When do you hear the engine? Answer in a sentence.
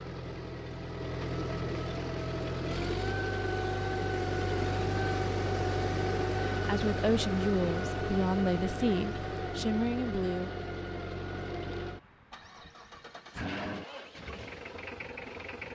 The engine can be heard from 0.0 to 15.7 s.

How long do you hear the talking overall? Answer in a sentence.
You can hear the talking for 4 seconds altogether.